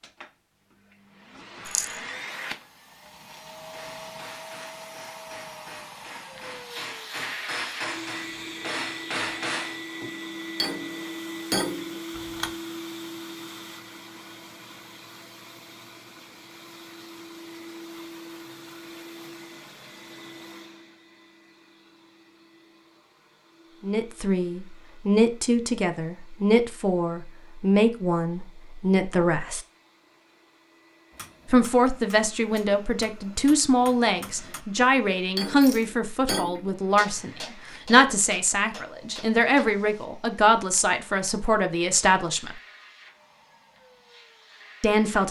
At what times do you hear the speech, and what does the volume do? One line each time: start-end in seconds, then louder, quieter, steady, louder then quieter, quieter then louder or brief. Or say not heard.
23.8-29.6 steady
31.5-42.5 steady
44.8-45.2 brief.